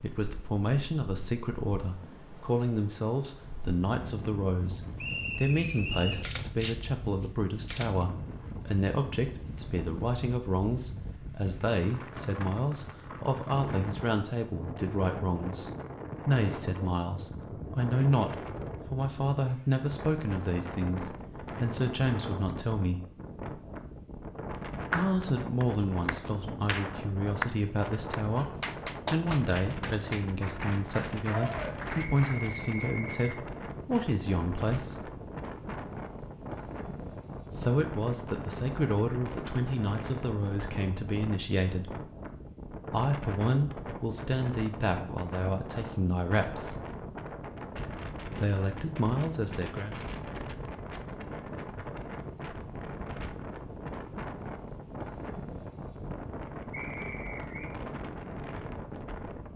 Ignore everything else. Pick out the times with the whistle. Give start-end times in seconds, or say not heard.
5.0-6.2, 32.1-33.2, 56.7-57.8.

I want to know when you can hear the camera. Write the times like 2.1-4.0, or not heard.
6.2-8.1.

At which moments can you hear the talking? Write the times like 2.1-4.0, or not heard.
0.0-23.0, 24.9-35.1, 37.5-42.0, 42.9-46.9, 48.3-50.0.